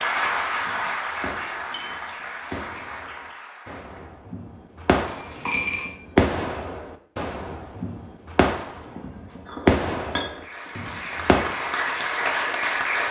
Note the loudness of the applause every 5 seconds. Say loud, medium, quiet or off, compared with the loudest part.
loud, off, loud.